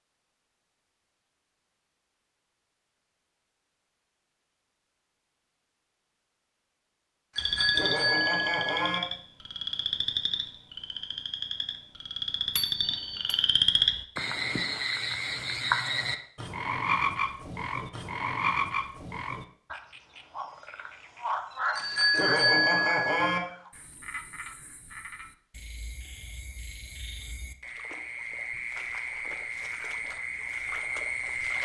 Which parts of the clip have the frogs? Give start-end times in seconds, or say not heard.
7.3-31.5.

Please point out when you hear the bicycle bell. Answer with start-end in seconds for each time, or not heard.
7.3-9.0, 12.6-13.3, 21.8-23.4.